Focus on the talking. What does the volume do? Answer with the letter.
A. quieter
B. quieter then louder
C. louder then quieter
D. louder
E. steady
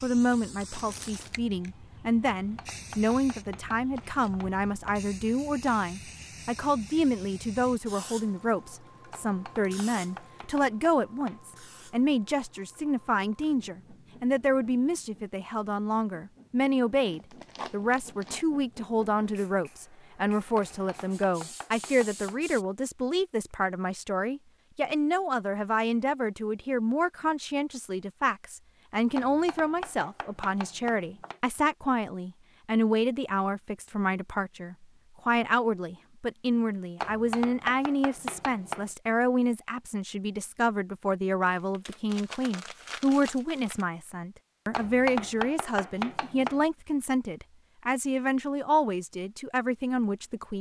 E.